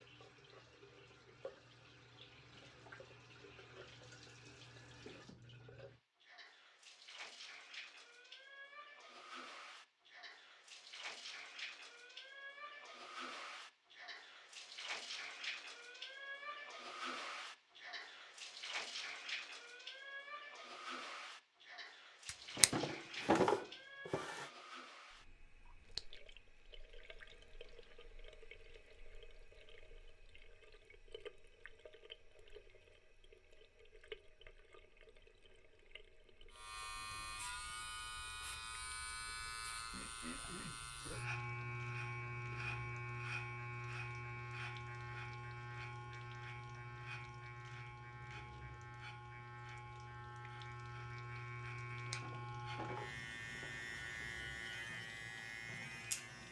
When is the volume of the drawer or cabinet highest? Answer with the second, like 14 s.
23 s.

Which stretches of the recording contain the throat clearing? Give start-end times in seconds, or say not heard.
39.9-41.2.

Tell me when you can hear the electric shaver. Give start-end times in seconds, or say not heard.
36.5-56.4.